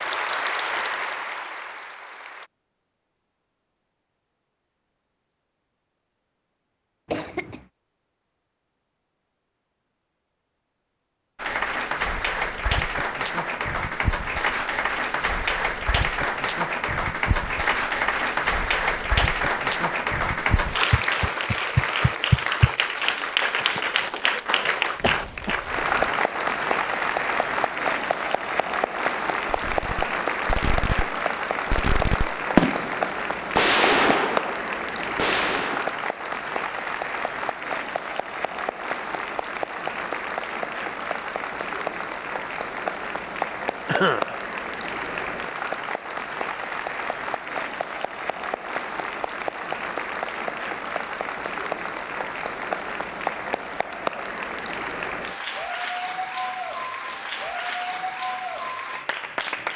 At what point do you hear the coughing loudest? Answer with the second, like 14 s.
44 s.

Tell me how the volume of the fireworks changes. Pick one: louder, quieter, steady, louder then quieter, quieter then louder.
louder then quieter.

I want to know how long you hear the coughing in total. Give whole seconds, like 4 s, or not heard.
2 s.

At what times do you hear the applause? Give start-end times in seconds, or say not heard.
0.0-2.5, 11.3-59.7.